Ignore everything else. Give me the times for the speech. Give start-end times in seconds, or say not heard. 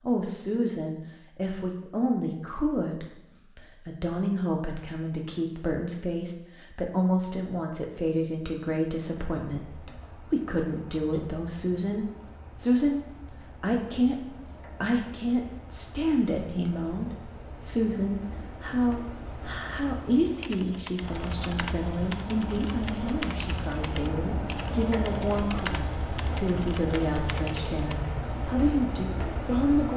0.0-13.0, 13.6-14.2, 14.8-29.9.